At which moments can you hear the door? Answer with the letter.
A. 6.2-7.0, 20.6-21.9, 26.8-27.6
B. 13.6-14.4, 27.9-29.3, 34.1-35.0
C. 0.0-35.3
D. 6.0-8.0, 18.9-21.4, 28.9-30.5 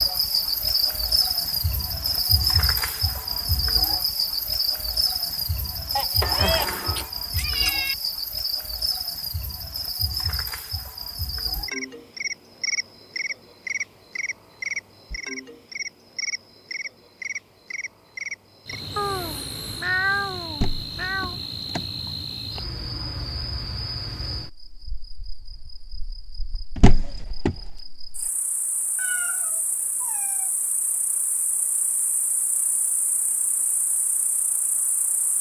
A.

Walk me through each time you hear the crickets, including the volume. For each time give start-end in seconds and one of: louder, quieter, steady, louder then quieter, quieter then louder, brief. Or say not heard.
0.0-35.3 quieter.